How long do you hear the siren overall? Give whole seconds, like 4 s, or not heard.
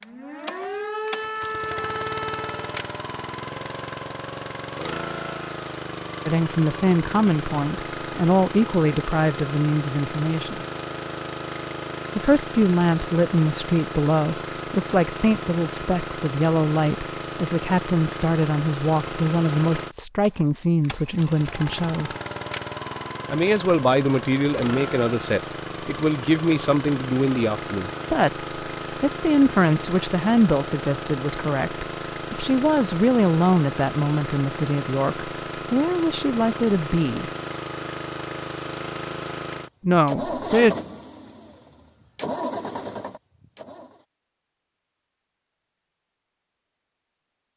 3 s.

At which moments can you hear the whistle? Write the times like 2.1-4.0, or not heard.
not heard.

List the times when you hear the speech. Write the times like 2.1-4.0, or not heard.
6.2-10.7, 12.2-22.1, 23.3-37.3, 39.8-40.8.